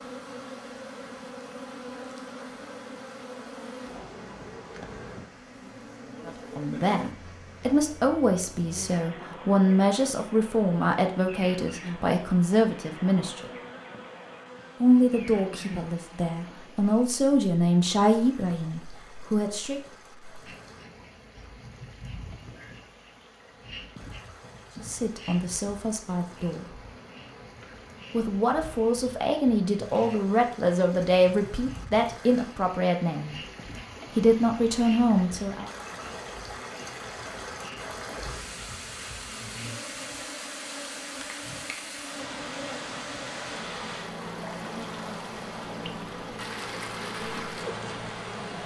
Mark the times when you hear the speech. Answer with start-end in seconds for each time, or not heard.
6.2-13.5, 14.8-19.8, 24.8-26.8, 28.1-33.4, 34.1-35.7.